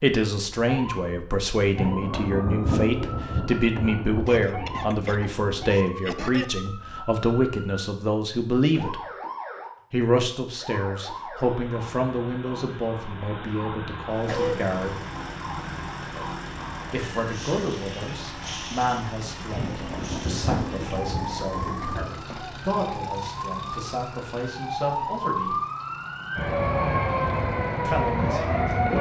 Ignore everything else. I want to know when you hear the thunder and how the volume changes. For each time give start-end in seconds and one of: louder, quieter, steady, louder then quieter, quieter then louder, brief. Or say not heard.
1.8-5.8 quieter
19.5-22.2 brief.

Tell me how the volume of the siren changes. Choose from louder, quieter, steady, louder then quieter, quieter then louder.
louder.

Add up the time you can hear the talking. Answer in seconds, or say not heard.
24 s.